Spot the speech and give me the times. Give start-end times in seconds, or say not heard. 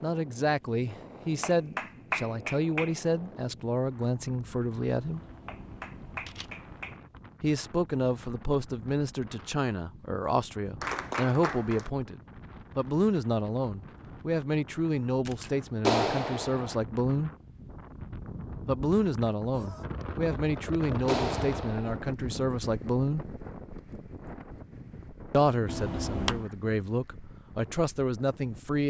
0.0-5.2, 7.4-17.3, 18.6-23.2, 25.3-28.8.